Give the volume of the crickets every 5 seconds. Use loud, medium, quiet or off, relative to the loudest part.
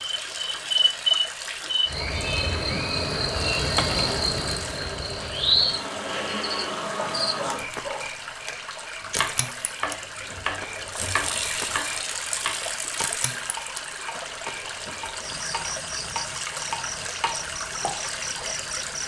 loud, loud, quiet, medium.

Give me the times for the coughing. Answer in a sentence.
The coughing can't be heard in this clip.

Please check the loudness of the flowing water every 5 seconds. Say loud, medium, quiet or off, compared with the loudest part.
loud, medium, loud, loud.